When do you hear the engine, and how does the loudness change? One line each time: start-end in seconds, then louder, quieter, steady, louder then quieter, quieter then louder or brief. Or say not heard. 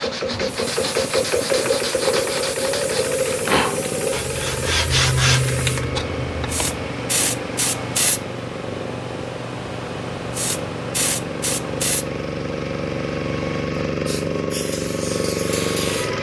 0.0-16.1 quieter then louder.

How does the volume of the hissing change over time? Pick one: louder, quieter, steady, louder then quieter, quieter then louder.
louder then quieter.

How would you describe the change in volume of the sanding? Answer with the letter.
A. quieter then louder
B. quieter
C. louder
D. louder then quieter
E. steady
C.